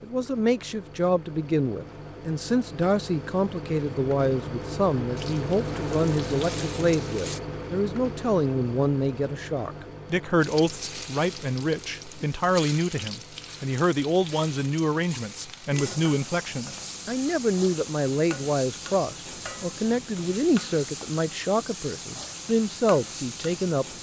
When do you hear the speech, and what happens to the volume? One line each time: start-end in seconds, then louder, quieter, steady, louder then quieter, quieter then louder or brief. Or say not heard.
0.0-23.9 steady.